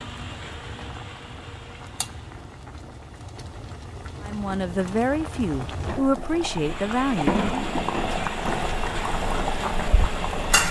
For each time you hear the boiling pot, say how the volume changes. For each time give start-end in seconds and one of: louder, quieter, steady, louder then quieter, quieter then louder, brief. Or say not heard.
0.0-10.6 louder.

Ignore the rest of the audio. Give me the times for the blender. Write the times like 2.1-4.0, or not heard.
0.0-2.5, 6.3-10.6.